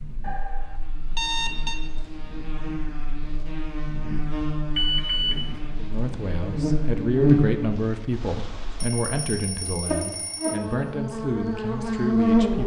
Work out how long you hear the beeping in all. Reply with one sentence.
You can hear the beeping for 4 seconds altogether.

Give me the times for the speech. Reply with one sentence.
You can hear the speech from 5.8 to 12.6 s.